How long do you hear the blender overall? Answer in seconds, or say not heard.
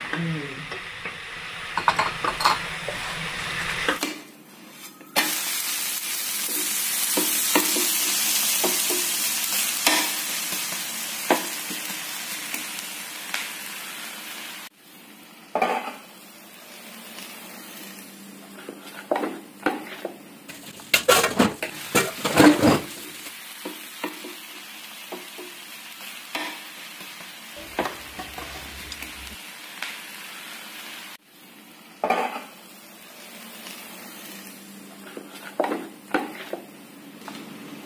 not heard.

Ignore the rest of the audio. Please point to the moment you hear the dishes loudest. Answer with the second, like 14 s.
23 s.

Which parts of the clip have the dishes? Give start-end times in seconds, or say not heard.
1.8-3.8, 20.5-23.3, 27.6-29.4.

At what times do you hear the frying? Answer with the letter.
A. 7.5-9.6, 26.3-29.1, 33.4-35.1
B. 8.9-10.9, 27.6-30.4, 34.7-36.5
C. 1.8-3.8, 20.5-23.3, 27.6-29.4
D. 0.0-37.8
D.